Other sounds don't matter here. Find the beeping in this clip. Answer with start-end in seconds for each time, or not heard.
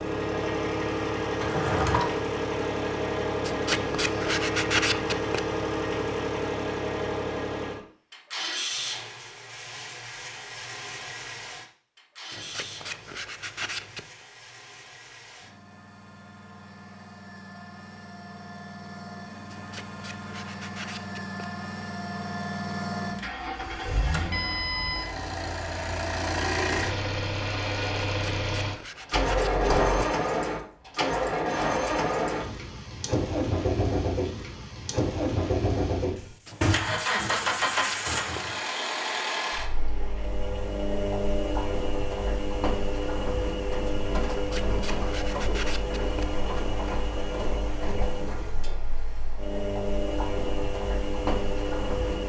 not heard.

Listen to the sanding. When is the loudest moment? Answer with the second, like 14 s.
5 s.